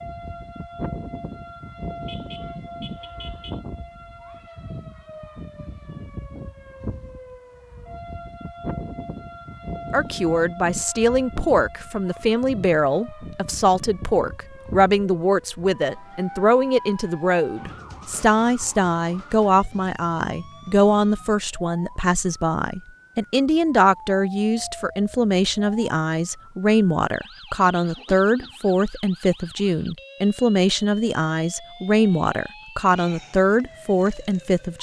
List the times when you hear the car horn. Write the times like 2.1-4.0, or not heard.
2.0-3.6.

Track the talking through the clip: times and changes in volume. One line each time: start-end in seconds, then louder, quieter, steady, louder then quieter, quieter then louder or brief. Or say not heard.
9.9-34.7 steady.